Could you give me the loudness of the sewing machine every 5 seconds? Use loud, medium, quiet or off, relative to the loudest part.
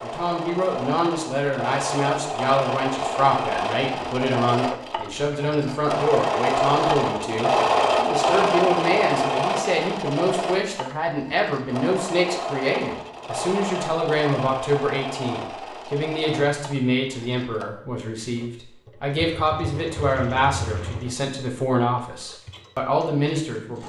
medium, loud, medium, quiet, quiet.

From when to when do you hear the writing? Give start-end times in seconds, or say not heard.
not heard.